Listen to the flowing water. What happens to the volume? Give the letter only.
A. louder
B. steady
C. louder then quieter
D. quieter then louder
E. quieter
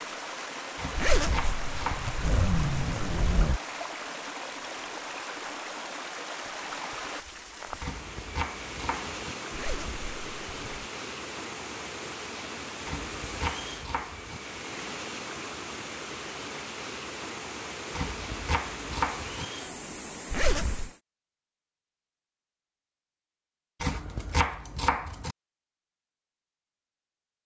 B.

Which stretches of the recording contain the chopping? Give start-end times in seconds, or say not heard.
0.8-2.1, 7.8-9.3, 12.8-14.4, 17.9-19.4, 23.8-25.4.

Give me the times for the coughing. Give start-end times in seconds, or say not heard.
not heard.